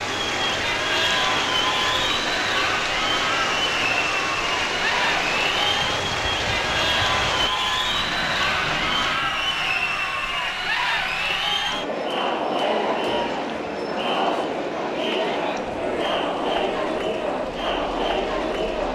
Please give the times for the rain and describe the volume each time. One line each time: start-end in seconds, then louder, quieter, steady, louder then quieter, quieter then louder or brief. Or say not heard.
0.0-18.8 quieter.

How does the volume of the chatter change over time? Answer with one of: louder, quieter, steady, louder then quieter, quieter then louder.
steady.